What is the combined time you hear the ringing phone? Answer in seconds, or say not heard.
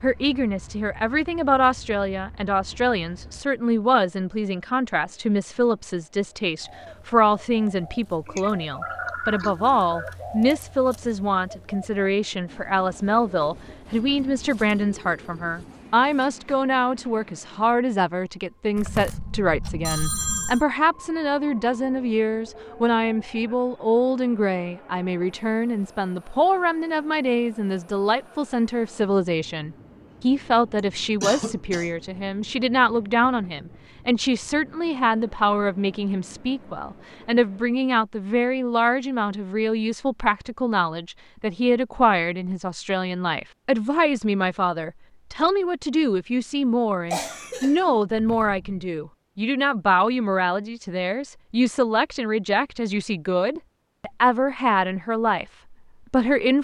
3 s.